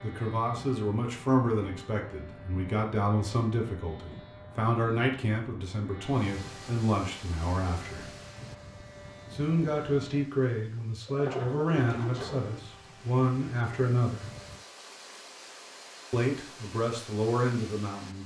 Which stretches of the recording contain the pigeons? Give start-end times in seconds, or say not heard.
11.1-12.5.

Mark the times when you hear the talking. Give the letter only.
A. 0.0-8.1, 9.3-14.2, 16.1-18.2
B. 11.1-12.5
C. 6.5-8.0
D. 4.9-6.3
A.